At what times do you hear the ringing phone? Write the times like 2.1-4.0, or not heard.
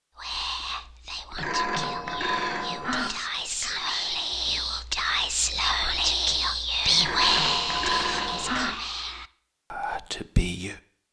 1.4-3.1, 7.0-8.7.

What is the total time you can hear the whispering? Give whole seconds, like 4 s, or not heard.
11 s.